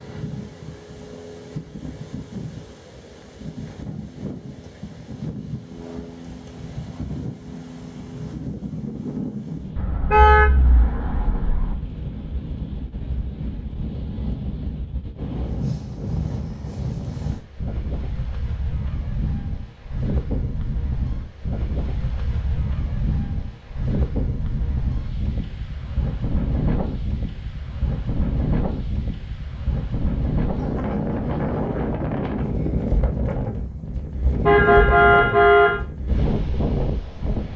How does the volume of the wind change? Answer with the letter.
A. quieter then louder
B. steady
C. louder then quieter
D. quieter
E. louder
E.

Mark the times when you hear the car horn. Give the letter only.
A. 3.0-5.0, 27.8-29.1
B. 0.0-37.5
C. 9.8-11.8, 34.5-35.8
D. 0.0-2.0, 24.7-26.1
C.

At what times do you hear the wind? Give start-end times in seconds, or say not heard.
0.0-37.5.